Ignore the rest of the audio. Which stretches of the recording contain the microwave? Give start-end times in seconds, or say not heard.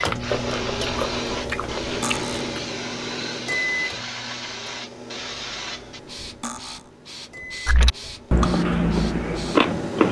0.0-10.0.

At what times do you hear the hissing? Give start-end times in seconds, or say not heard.
0.0-10.0.